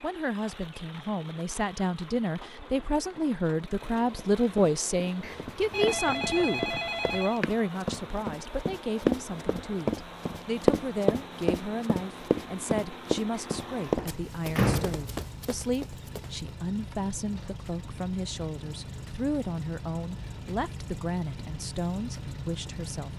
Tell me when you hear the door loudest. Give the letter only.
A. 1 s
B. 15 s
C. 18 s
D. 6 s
B.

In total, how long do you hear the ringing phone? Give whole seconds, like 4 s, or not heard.
2 s.